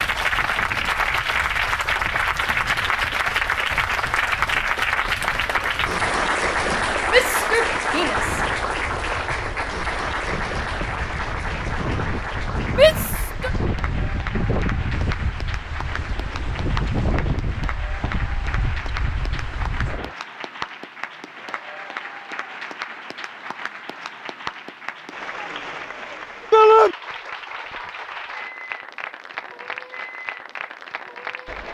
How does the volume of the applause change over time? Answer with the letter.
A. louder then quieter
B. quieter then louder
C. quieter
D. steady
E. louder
C.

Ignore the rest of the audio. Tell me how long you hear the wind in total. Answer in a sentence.
The wind can be heard for 20 seconds in total.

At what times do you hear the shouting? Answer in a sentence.
The shouting can be heard from 7.1 to 8.4 s, from 12.7 to 13.5 s and from 26.5 to 26.9 s.